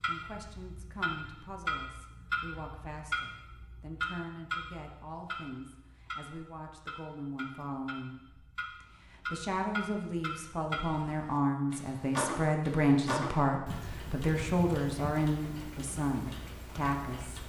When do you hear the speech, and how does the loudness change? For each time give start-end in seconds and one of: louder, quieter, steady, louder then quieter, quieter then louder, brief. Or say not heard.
0.1-17.4 louder.